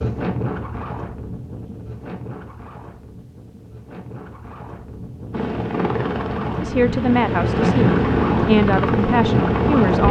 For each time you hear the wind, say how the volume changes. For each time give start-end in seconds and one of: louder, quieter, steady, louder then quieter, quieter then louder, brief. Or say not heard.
0.0-10.0 quieter then louder.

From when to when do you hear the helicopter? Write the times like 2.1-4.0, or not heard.
5.3-10.0.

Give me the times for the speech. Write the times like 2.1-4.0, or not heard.
6.6-10.0.